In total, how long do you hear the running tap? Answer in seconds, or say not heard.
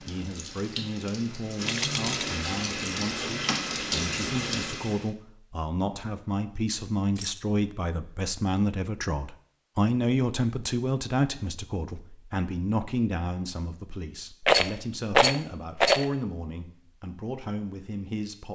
5 s.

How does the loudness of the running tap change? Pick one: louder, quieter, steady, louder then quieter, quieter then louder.
louder.